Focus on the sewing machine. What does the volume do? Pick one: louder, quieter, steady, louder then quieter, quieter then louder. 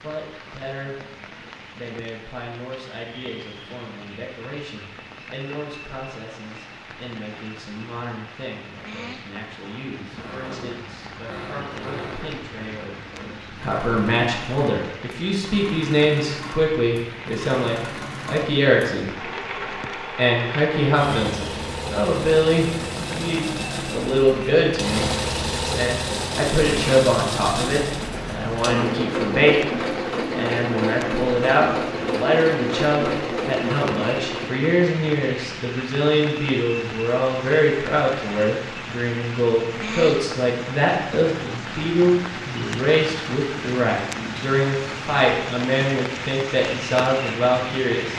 louder.